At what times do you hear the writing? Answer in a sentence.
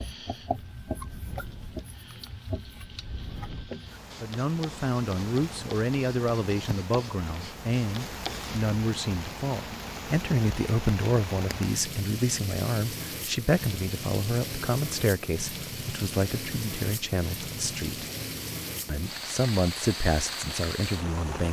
The writing can be heard from 0.0 to 8.6 s.